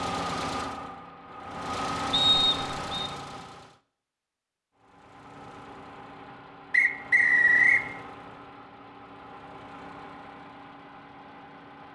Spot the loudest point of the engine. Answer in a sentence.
The loudest moment of the engine is at 2 seconds.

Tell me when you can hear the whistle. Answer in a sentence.
The whistle can be heard from 2.1 to 3.1 s and from 6.7 to 7.8 s.